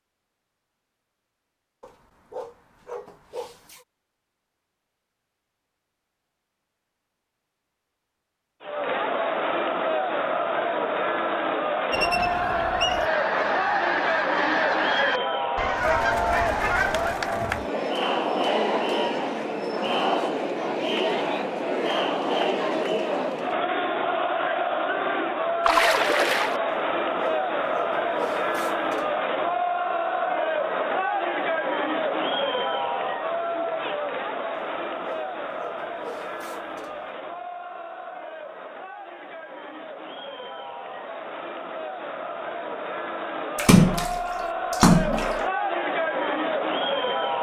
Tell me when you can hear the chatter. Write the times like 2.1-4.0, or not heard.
8.6-47.3.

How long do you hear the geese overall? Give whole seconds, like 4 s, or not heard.
5 s.